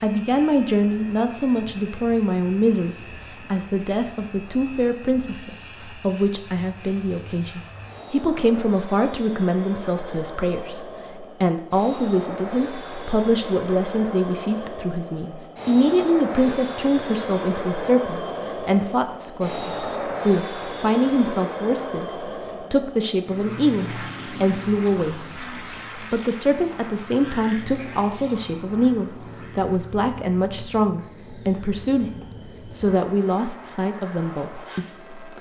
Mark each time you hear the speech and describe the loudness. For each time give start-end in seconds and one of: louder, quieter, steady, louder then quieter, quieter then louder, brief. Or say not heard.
0.0-35.3 steady.